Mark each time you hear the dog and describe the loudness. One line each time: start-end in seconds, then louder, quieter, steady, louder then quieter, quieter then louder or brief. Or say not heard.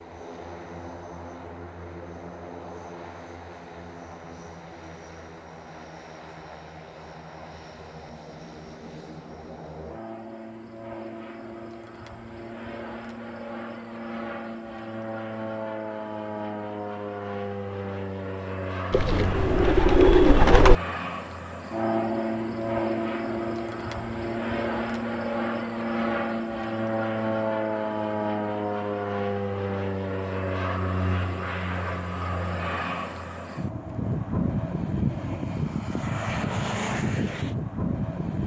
not heard.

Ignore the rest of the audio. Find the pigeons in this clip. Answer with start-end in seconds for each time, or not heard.
18.9-20.8.